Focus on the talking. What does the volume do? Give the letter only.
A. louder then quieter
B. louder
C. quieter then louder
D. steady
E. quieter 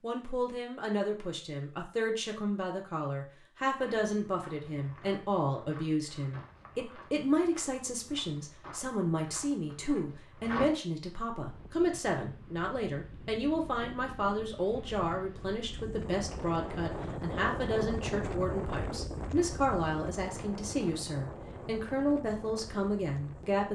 D.